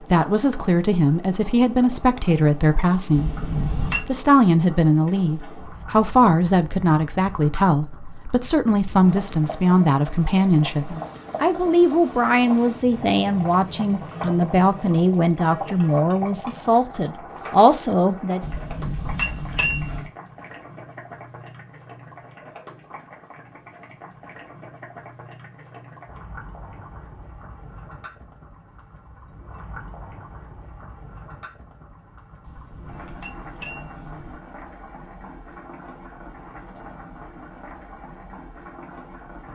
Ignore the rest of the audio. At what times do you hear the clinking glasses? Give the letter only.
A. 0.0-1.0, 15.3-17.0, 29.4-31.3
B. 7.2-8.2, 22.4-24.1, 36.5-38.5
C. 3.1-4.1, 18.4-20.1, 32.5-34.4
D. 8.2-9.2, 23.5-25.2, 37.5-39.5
C.